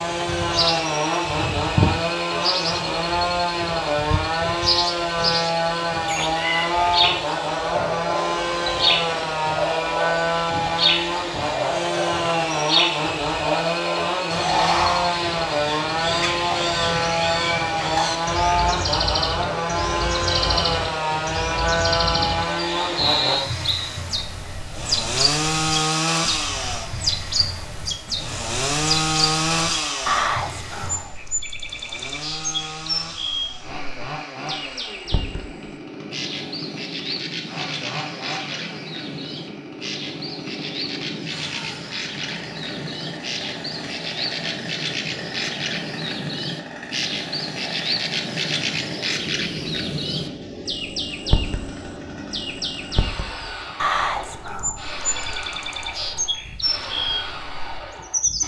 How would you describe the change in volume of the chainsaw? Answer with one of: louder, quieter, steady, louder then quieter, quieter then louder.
quieter.